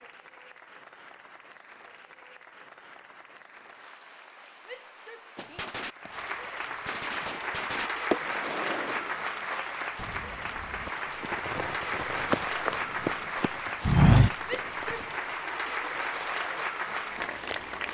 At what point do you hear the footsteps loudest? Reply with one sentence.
The loudest moment of the footsteps is at 14 seconds.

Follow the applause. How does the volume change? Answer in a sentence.
The loudness of the applause goes up.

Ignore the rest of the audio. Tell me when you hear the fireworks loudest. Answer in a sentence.
The loudest moment of the fireworks is at 8 seconds.